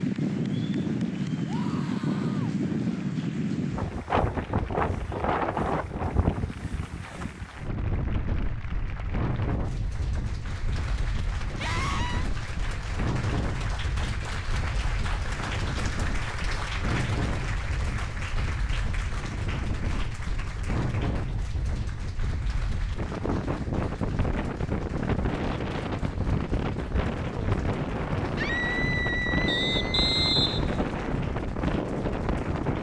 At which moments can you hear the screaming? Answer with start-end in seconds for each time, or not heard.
1.4-2.5, 11.6-12.3, 28.4-30.4.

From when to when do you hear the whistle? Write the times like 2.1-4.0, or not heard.
29.4-30.9.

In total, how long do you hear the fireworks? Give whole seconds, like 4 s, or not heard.
not heard.